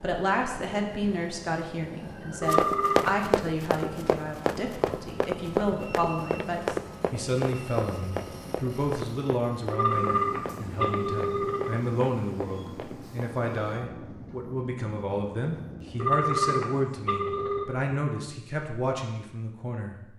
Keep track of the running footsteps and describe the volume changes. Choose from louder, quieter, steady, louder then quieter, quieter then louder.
quieter.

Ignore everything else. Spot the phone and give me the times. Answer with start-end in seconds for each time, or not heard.
2.4-3.1, 9.7-11.8, 15.9-17.6.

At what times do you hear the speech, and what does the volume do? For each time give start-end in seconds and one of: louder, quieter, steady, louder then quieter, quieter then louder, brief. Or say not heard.
0.0-19.9 steady.